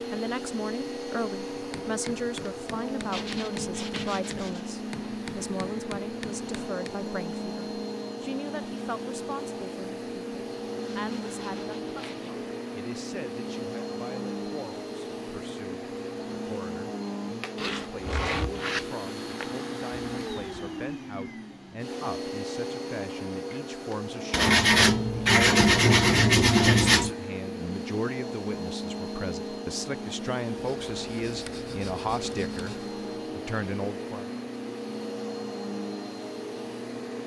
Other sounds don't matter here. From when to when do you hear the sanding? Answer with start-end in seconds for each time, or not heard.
3.1-4.8, 10.9-12.3, 17.6-19.4, 24.3-27.1, 30.6-32.9.